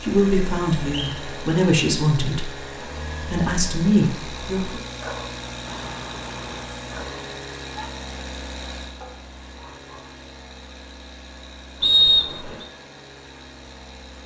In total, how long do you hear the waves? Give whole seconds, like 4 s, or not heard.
not heard.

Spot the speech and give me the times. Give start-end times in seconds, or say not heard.
0.0-4.8.